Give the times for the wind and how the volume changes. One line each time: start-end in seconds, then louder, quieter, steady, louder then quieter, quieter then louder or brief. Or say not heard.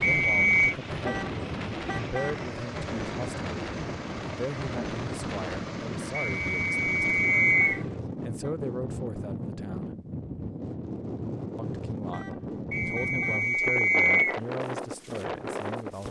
0.0-16.0 steady.